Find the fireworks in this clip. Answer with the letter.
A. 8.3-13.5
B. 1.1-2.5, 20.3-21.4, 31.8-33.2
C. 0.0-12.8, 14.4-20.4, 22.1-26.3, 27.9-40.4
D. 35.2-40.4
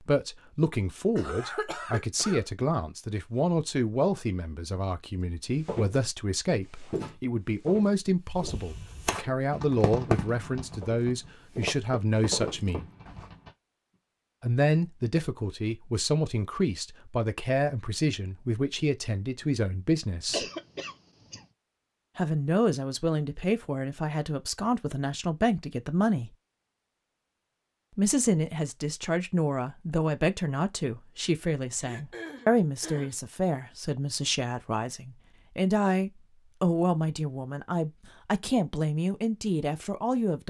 A.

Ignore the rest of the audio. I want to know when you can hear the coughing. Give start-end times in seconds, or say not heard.
1.1-2.5, 20.3-21.4, 31.8-33.2.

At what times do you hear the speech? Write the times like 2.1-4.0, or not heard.
0.0-12.8, 14.4-20.4, 22.1-26.3, 27.9-40.4.